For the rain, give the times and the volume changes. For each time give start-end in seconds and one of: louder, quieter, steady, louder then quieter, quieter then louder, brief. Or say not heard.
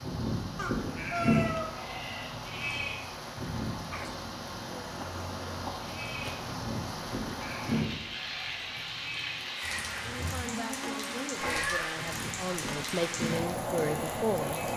0.0-14.7 louder.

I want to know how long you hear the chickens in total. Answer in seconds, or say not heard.
3 s.